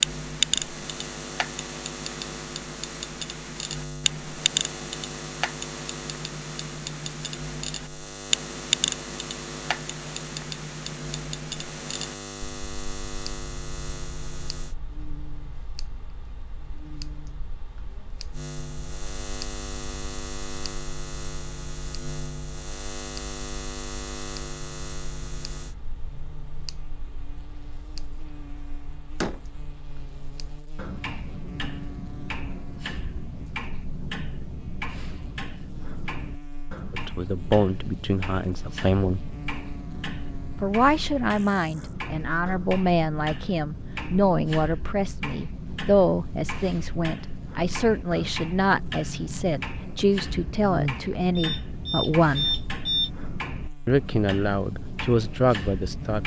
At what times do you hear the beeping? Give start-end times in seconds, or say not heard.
51.4-53.1.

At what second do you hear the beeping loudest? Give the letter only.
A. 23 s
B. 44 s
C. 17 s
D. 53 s
D.